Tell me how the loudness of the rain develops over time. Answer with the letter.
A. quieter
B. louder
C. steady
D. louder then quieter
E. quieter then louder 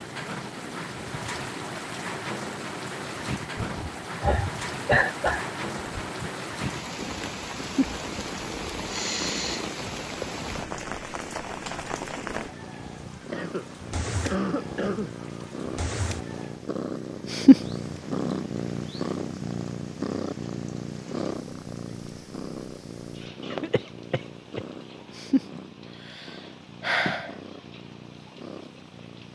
A.